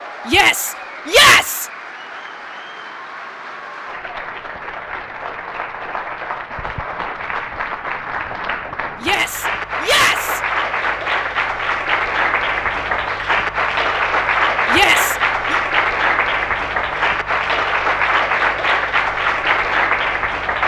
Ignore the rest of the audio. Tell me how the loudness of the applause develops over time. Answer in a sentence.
The volume of the applause goes up.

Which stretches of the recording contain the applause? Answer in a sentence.
You can hear the applause from 0.0 to 20.6 s.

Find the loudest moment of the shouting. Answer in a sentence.
The volume of the shouting peaks at 1 second.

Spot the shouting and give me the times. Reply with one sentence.
The shouting can be heard from 0.2 to 1.6 s, from 9.0 to 10.4 s and from 14.7 to 15.6 s.